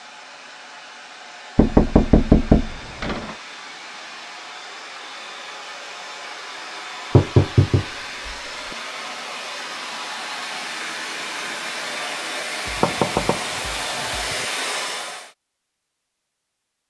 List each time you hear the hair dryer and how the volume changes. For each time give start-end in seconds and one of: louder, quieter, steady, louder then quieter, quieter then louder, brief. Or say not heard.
0.0-15.3 louder.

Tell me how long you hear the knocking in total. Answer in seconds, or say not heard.
5 s.